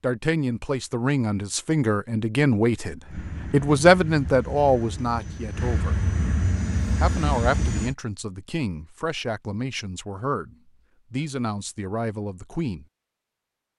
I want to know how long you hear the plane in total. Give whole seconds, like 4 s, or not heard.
5 s.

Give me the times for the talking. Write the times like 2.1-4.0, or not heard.
0.0-6.0, 7.0-12.8.